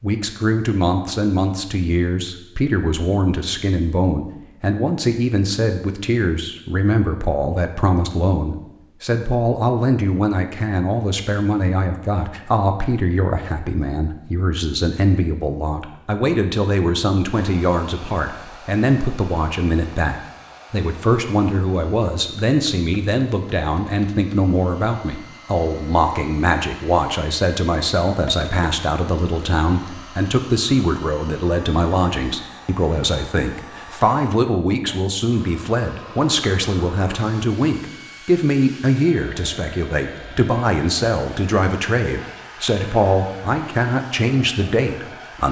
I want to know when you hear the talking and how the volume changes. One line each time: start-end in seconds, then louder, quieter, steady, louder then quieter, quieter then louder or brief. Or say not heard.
0.0-45.4 steady.